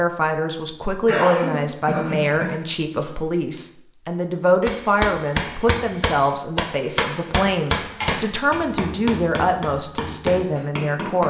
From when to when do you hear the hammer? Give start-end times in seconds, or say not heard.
4.7-11.2.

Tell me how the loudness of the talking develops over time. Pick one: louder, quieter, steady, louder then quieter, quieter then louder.
steady.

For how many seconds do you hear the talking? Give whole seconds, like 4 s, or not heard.
11 s.